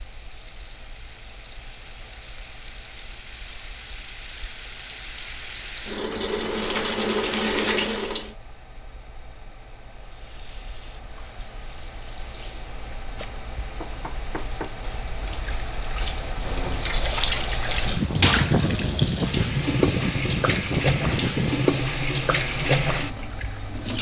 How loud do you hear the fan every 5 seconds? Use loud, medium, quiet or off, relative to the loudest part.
quiet, quiet, quiet, loud, loud.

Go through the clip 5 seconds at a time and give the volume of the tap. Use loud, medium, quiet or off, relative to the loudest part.
quiet, loud, quiet, loud, loud.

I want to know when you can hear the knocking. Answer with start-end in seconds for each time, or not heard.
13.2-14.8.